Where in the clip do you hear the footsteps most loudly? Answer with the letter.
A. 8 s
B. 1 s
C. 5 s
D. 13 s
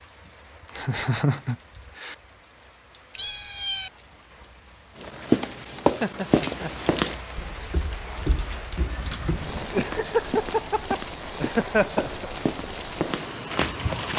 C.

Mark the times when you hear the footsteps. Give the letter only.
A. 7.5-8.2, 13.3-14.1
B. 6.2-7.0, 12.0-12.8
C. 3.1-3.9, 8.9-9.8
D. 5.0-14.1
D.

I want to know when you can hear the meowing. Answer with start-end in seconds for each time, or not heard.
3.1-3.9, 8.9-9.8.